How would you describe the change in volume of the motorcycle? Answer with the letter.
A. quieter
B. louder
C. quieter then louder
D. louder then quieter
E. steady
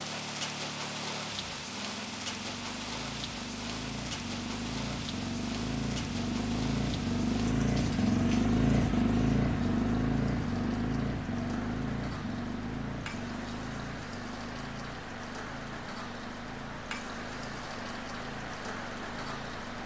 D.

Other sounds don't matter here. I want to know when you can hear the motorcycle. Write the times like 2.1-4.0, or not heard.
0.0-19.8.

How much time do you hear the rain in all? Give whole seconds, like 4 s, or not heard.
20 s.